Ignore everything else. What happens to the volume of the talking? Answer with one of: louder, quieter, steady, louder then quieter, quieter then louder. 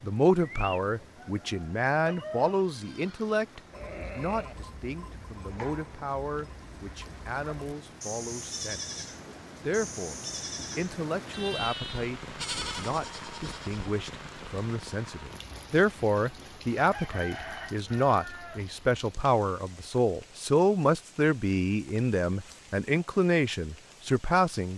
quieter then louder.